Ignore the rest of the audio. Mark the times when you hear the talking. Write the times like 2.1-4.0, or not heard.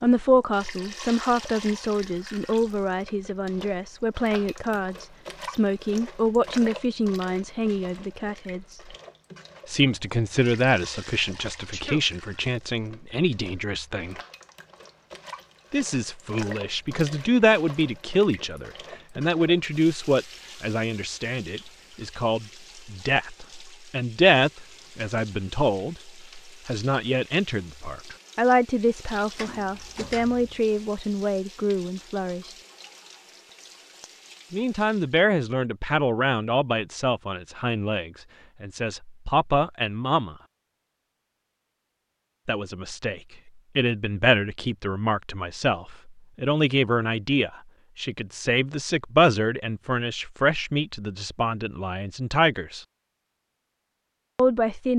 0.0-8.8, 9.7-14.2, 15.7-32.5, 34.5-40.4, 42.5-52.9, 54.4-54.9.